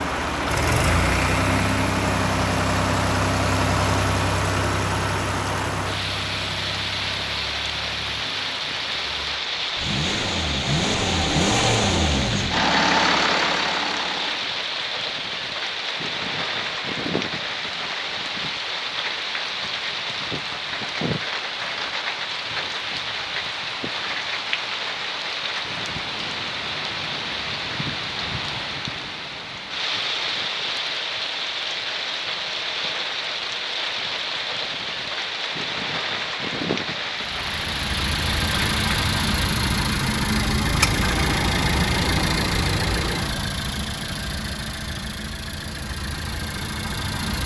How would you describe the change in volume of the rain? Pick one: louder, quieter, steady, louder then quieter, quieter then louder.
steady.